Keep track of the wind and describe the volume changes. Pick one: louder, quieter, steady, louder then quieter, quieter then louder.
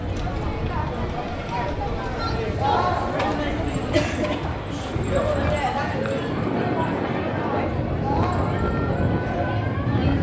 louder.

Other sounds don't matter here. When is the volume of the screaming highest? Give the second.
3 s.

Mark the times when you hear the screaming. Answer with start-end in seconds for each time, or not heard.
2.5-3.0, 8.0-8.5.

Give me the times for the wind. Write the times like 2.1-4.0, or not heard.
0.0-10.1.